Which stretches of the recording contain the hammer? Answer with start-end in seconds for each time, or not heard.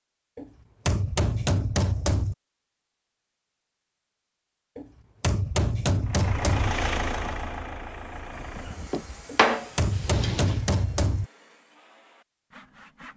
0.3-2.4, 4.8-6.8, 9.2-11.2.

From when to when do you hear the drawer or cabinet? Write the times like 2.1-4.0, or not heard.
8.9-10.6.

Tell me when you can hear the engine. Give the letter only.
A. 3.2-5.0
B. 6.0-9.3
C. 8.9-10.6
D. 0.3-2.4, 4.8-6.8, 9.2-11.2
B.